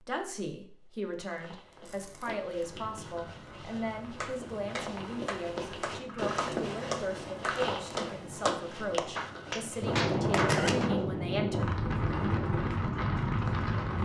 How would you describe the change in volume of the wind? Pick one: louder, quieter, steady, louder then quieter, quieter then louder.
louder.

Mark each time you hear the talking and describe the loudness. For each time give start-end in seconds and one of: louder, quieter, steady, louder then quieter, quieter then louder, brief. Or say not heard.
0.1-11.7 steady.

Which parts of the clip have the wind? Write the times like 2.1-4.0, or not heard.
2.6-14.0.